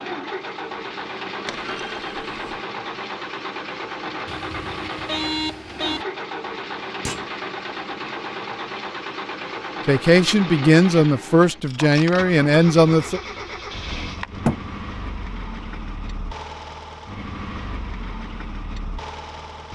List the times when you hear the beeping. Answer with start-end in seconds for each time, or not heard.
4.2-6.0.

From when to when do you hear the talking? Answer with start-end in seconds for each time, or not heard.
9.8-13.2.